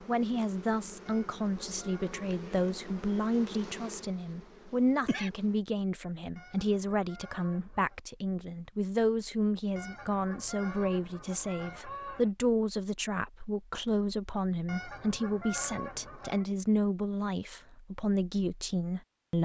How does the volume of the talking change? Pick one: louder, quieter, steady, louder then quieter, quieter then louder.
steady.